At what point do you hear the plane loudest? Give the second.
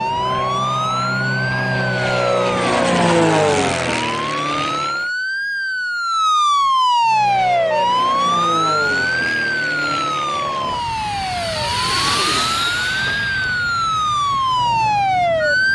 3 s.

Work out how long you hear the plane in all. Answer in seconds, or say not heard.
14 s.